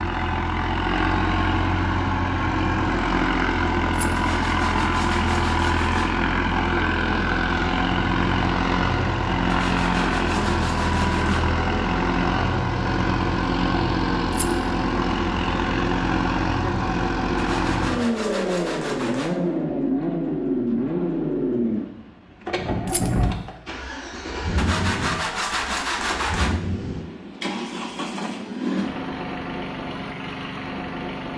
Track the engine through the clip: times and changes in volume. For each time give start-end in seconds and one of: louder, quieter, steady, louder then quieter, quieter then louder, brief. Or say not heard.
0.0-31.3 quieter.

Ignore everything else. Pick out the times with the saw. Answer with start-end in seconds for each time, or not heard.
4.2-6.2, 9.4-11.5, 17.4-19.4, 24.6-26.6.